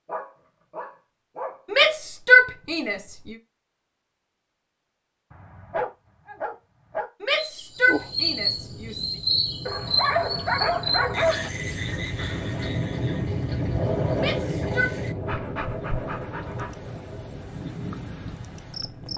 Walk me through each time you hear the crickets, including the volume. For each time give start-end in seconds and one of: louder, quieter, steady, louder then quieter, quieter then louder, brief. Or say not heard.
7.3-19.1 quieter.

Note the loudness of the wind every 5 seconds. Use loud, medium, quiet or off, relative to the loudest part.
off, quiet, loud, medium.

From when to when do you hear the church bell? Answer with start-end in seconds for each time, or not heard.
not heard.